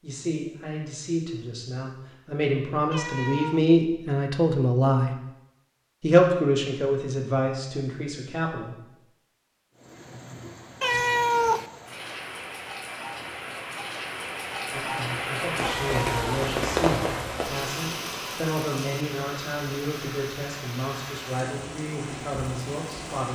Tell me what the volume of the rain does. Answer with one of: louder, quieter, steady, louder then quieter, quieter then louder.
louder then quieter.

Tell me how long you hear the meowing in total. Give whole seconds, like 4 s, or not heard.
2 s.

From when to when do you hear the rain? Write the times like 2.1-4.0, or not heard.
9.8-23.3.